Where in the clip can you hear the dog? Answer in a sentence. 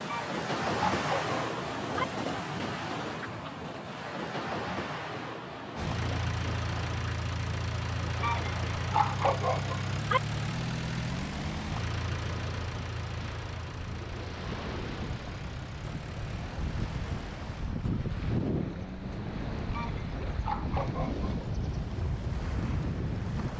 The dog can be heard from 0.1 to 2.0 s, from 8.2 to 10.2 s and from 19.7 to 21.3 s.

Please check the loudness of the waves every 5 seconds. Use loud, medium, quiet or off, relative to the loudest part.
loud, medium, medium, loud, loud.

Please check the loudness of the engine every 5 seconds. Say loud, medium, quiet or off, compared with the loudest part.
off, loud, loud, medium, off.